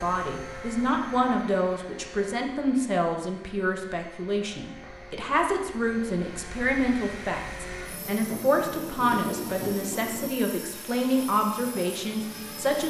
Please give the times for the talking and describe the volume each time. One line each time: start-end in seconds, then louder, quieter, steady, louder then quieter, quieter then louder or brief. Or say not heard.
0.0-12.8 steady.